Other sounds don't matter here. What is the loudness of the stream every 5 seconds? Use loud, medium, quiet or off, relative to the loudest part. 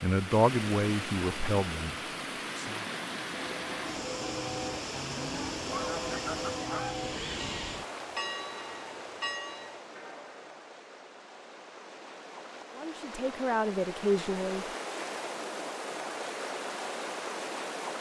loud, loud, medium, loud.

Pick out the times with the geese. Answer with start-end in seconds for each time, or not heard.
4.9-7.0.